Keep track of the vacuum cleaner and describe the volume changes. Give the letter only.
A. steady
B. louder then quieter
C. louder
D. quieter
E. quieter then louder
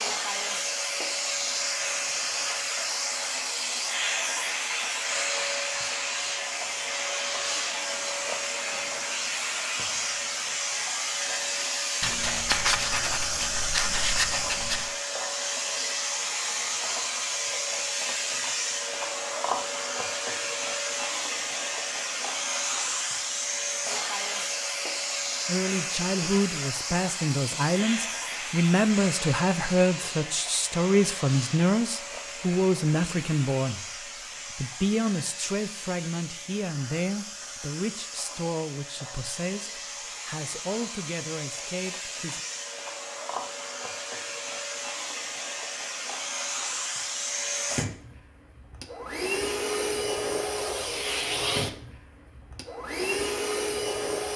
E.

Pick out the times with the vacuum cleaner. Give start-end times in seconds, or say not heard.
0.0-54.3.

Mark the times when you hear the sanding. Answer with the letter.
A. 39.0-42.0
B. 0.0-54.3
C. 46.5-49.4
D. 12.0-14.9
D.